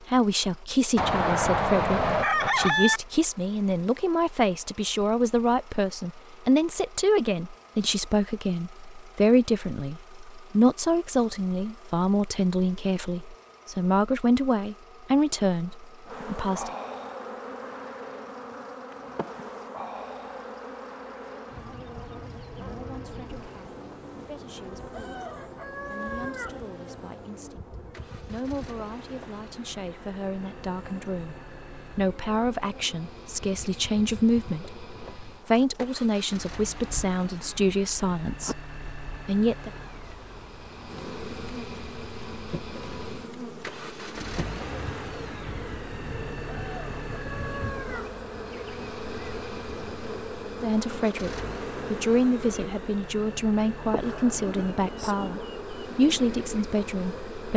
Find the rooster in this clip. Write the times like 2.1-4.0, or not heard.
0.9-3.0, 24.9-26.6, 46.5-48.1.